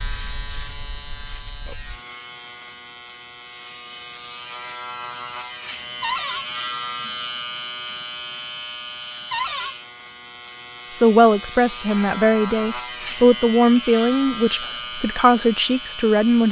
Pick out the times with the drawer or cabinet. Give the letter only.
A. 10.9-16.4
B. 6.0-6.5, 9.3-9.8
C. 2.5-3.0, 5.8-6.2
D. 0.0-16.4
B.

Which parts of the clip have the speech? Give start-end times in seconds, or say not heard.
10.9-16.4.